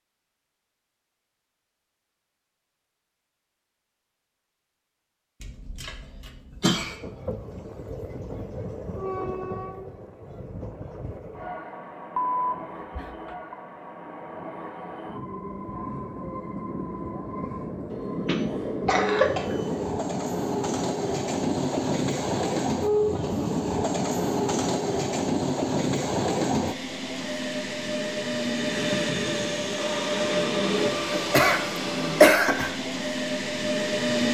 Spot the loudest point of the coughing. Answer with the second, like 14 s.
32 s.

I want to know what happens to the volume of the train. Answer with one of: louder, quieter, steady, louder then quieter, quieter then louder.
louder.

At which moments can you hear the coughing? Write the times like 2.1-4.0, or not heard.
5.4-7.0, 18.2-19.6, 31.1-32.8.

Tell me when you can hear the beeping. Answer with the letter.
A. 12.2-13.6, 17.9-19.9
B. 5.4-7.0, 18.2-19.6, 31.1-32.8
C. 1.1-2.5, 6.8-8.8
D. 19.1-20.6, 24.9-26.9
A.